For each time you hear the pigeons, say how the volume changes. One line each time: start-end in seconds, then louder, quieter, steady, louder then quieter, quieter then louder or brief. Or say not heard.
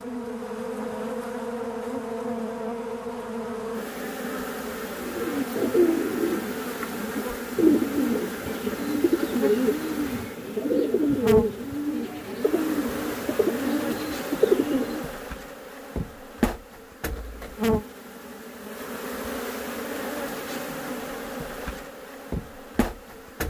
5.0-15.1 steady.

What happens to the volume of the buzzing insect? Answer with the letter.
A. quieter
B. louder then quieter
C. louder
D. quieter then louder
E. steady
E.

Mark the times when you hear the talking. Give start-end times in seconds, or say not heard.
not heard.